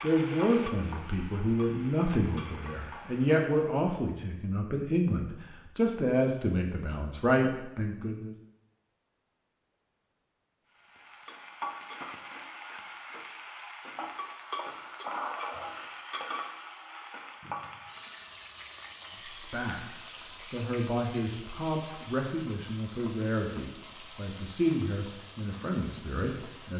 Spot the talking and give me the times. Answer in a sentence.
The talking can be heard from 0.0 to 8.3 s and from 19.3 to 26.7 s.